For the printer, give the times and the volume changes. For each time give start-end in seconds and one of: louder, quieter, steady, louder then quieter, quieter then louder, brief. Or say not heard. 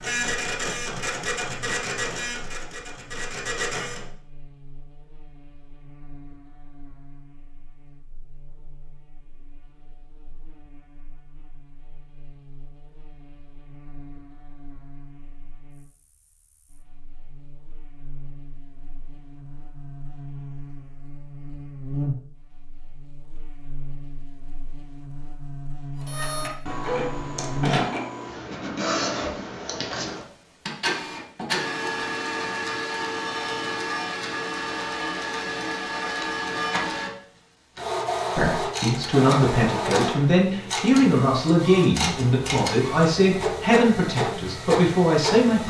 0.0-4.0 quieter then louder
26.0-45.6 steady.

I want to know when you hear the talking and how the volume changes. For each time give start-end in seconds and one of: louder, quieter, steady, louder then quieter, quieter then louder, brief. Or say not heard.
38.4-45.6 steady.